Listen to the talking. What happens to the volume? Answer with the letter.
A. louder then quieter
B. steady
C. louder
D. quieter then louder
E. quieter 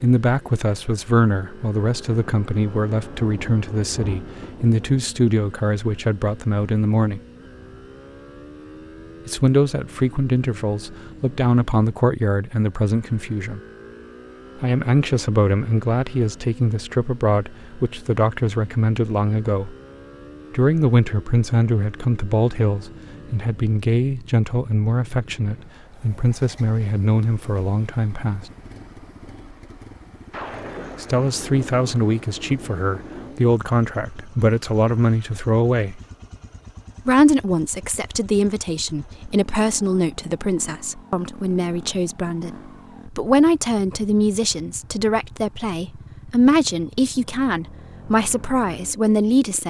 B.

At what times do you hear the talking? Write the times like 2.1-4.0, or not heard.
0.0-7.2, 9.2-13.6, 14.6-19.8, 20.5-28.5, 31.0-36.0, 37.0-49.6.